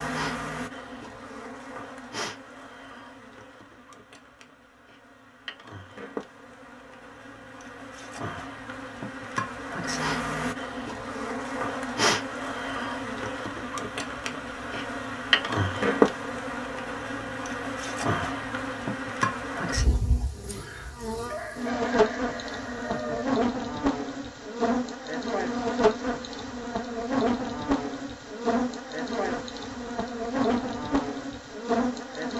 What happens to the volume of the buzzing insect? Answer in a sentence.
The volume of the buzzing insect goes up.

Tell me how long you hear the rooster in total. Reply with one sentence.
The rooster can be heard for 2 seconds in total.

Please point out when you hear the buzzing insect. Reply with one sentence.
The buzzing insect can be heard from 0.0 to 32.3 s.